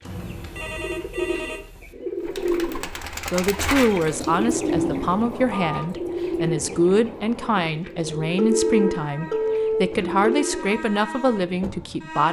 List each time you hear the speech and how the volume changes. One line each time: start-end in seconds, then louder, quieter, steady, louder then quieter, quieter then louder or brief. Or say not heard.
3.3-12.2 steady.